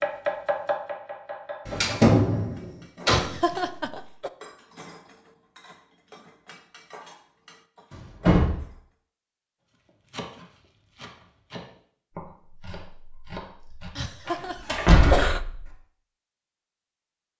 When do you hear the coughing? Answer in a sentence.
You can hear the coughing from 3.0 to 4.3 s and from 13.9 to 15.4 s.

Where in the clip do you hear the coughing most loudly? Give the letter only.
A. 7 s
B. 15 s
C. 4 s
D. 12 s
B.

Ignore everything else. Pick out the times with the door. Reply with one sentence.
The door can be heard from 1.6 to 3.3 s, from 8.2 to 8.6 s and from 14.2 to 15.7 s.